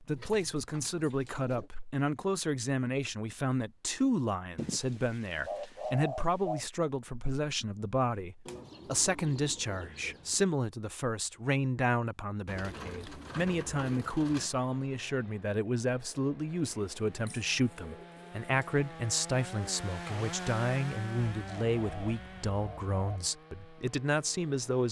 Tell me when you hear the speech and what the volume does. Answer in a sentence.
You can hear the speech from 0.0 to 24.8 s, at a steady volume.